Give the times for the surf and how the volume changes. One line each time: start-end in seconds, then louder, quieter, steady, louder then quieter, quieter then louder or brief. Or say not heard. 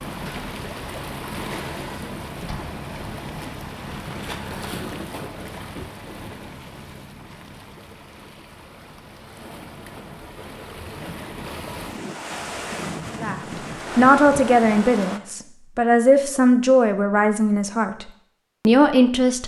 0.0-15.2 quieter then louder.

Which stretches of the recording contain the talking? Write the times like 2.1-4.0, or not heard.
13.2-18.1, 18.6-19.4.